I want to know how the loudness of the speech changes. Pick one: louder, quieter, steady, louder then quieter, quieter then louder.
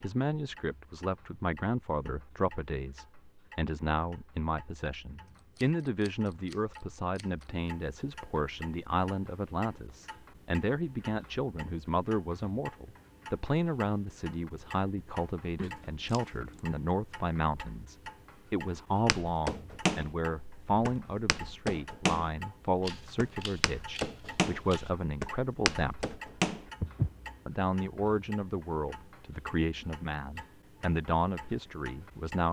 steady.